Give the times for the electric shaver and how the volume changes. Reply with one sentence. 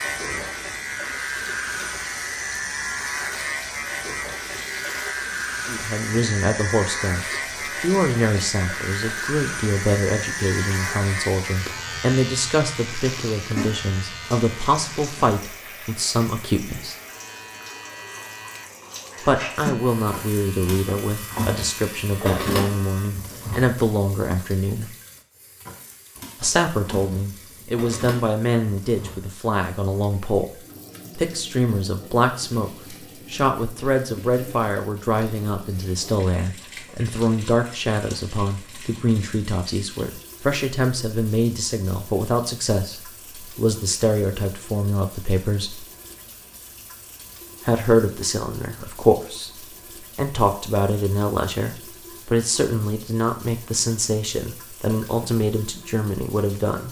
The electric shaver can be heard from 0.0 to 23.1 s, getting quieter.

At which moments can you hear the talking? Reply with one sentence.
The talking can be heard from 5.7 to 16.9 s, from 19.2 to 24.9 s, from 26.4 to 30.4 s, from 31.1 to 45.9 s, from 47.6 to 49.5 s and from 50.1 to 56.8 s.